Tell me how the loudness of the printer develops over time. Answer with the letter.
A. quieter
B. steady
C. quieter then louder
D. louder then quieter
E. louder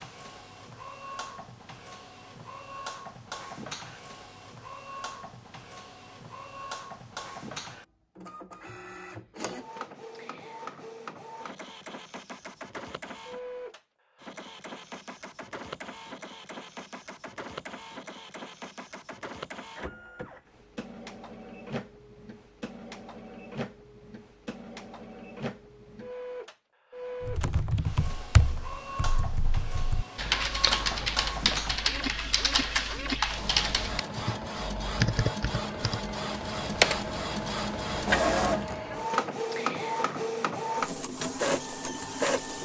E.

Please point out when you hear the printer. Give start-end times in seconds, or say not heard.
0.0-42.6.